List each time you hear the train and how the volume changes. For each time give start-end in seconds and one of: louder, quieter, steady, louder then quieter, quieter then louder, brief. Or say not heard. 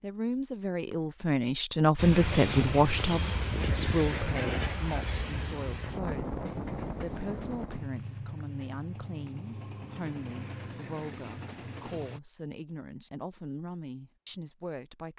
1.9-12.2 quieter.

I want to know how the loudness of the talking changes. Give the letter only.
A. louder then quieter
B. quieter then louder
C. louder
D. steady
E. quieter
E.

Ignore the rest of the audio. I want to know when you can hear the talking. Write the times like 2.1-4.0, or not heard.
0.0-15.1.